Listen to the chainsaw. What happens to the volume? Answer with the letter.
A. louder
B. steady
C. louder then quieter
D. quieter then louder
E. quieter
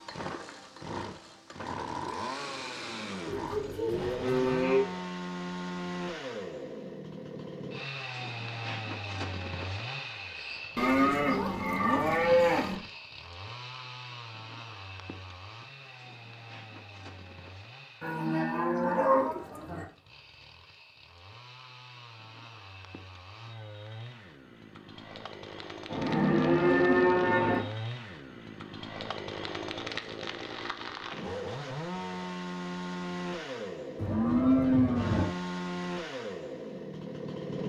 D.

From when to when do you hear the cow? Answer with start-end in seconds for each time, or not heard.
3.2-4.8, 10.8-12.8, 18.0-19.9, 25.9-27.6, 34.0-35.2.